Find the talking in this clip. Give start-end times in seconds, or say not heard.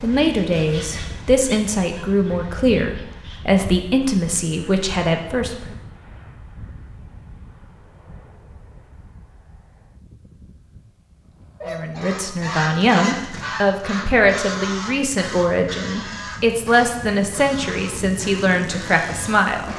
0.0-5.8, 11.7-19.7.